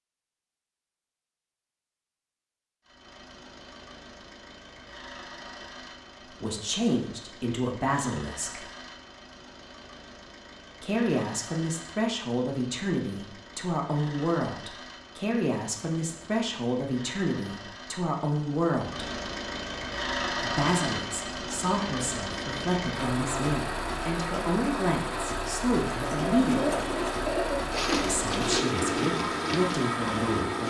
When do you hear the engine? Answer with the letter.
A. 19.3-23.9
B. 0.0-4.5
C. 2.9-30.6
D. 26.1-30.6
C.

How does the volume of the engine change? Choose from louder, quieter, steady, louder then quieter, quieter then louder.
louder.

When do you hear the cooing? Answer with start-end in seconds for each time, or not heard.
26.1-30.6.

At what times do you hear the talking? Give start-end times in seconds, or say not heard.
6.4-8.6, 10.8-19.1, 20.4-26.9, 28.1-30.6.